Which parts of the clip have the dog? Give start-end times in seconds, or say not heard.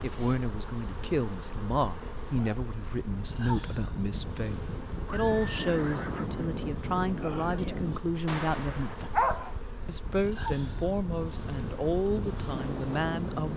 8.2-9.5.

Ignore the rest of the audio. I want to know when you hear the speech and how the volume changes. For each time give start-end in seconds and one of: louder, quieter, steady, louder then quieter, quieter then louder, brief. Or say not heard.
0.0-13.5 steady.